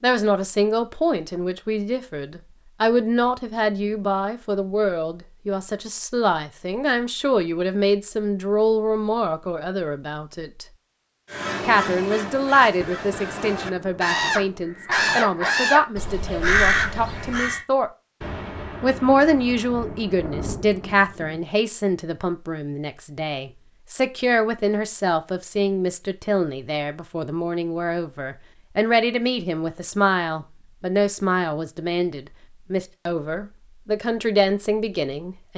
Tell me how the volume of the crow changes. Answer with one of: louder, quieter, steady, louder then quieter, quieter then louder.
louder.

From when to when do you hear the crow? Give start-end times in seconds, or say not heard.
11.3-17.6.